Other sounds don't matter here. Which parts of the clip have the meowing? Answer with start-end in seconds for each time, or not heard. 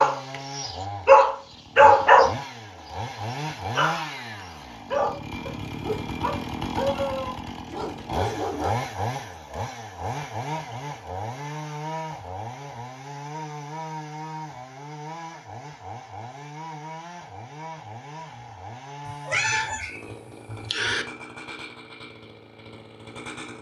19.1-21.1.